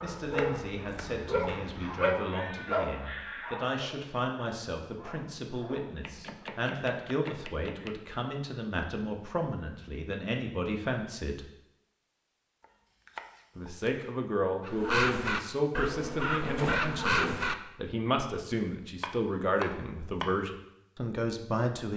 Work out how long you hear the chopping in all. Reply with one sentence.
The chopping can be heard for 6 seconds in total.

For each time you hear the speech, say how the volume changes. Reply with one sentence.
The speech can be heard from 0.0 to 11.4 s, at a steady volume; and from 13.6 to 21.9 s, at a steady volume.